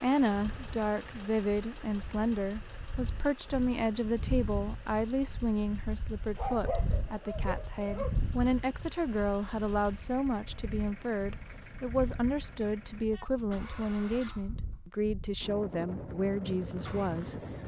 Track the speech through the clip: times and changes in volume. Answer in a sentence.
You can hear the speech from 0.0 to 17.4 s, at a steady volume.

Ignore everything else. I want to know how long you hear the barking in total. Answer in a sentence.
You can hear the barking for 2 seconds altogether.